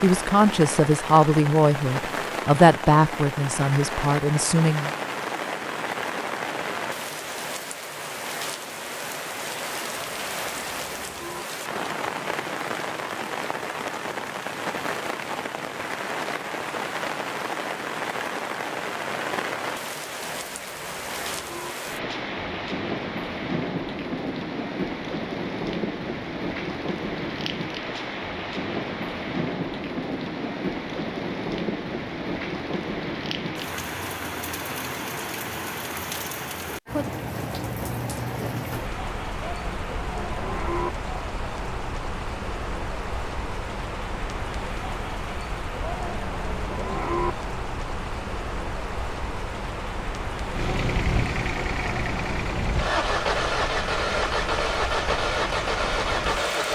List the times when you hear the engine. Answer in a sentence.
You can hear the engine from 50.5 to 56.6 s.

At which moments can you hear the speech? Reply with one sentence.
The speech can be heard from 0.0 to 4.9 s.